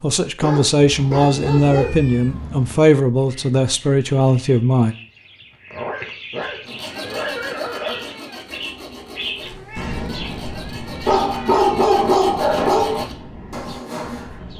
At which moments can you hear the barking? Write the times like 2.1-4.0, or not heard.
0.4-1.9, 5.7-8.2, 11.1-13.1.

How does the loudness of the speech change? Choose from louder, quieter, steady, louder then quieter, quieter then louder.
steady.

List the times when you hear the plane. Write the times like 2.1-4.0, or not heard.
not heard.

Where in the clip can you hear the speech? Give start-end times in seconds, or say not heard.
0.0-5.0.